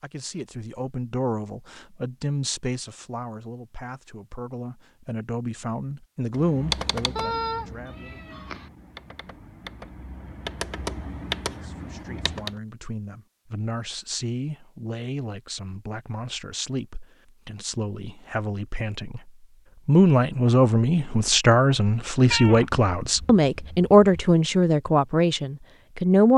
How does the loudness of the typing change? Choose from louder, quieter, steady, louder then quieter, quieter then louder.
quieter then louder.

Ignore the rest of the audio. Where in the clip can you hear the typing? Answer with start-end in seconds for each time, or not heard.
6.3-12.6.